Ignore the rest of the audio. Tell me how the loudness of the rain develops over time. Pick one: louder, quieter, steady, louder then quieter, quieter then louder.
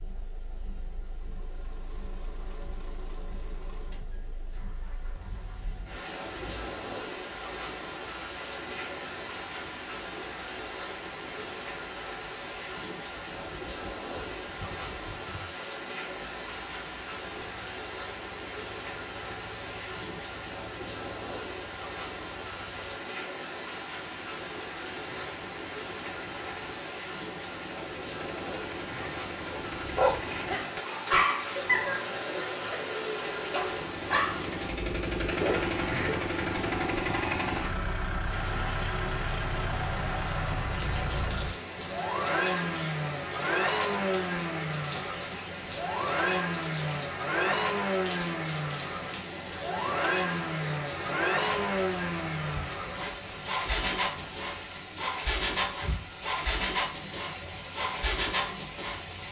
steady.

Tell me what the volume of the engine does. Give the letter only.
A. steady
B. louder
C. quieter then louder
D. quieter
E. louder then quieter
B.